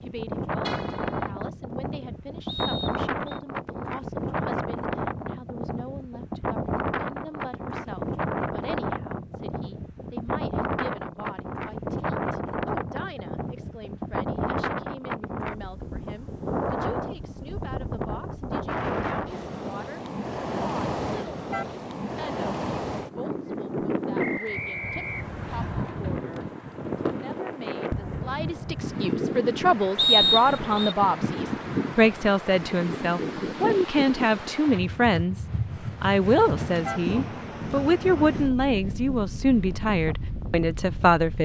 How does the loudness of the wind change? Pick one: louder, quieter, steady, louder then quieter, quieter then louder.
steady.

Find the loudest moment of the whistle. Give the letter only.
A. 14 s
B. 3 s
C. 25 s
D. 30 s
D.